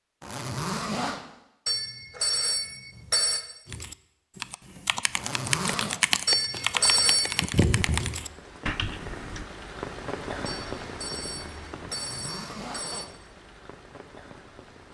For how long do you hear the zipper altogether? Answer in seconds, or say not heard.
3 s.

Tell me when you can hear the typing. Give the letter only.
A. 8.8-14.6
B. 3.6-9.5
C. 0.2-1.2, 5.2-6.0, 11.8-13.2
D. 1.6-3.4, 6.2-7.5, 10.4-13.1
B.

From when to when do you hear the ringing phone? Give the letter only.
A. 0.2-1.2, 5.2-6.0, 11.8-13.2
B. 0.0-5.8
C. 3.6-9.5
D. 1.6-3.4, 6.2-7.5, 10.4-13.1
D.